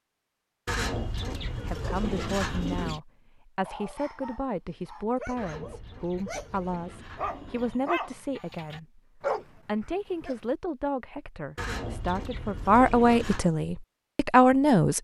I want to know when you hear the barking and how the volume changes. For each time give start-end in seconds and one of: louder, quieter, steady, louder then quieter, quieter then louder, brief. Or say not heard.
3.6-10.3 louder.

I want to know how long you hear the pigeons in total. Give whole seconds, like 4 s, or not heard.
7 s.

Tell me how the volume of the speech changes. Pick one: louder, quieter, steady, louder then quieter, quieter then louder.
louder.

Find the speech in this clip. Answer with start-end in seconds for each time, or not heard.
1.6-15.0.